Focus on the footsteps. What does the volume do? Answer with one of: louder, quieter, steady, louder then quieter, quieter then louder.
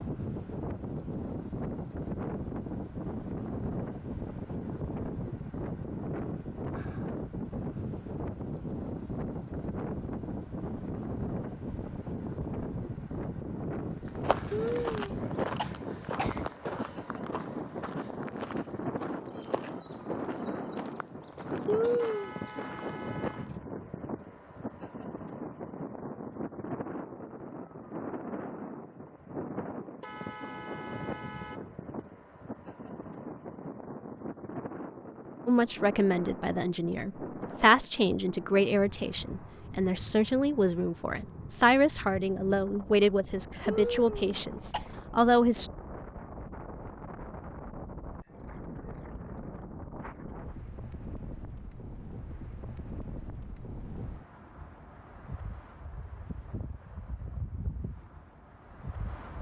quieter.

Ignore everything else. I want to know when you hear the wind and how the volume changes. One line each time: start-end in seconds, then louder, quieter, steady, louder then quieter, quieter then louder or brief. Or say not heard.
0.0-59.3 quieter.